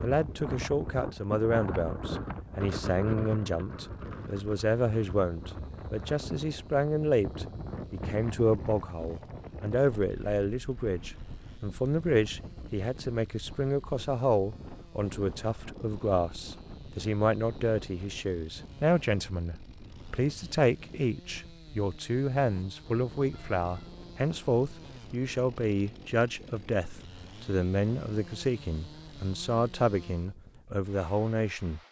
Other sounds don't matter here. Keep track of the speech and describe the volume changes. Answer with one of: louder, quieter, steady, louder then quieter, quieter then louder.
steady.